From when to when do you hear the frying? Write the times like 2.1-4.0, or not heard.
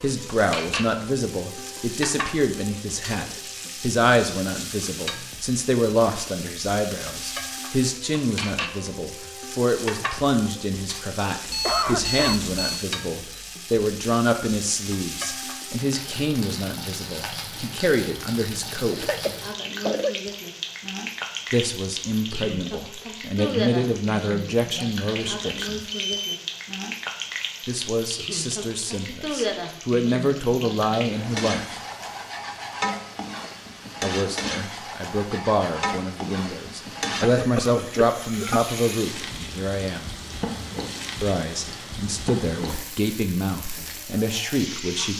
0.0-45.1.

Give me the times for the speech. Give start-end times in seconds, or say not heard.
0.0-19.1, 21.5-25.9, 27.6-31.8, 34.0-40.1, 41.2-45.1.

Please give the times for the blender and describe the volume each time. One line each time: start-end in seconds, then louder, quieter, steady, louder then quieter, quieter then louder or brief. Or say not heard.
not heard.